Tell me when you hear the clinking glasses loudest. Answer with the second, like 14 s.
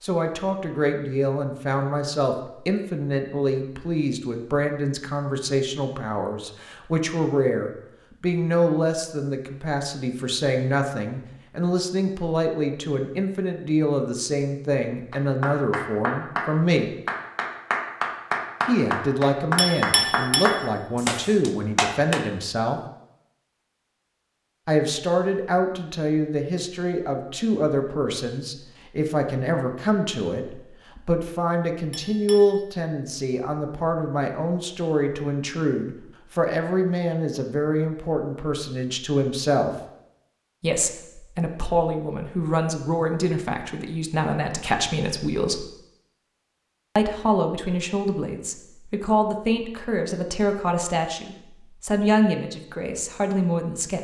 20 s.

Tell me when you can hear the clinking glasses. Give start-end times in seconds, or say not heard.
19.6-20.6, 31.9-32.6.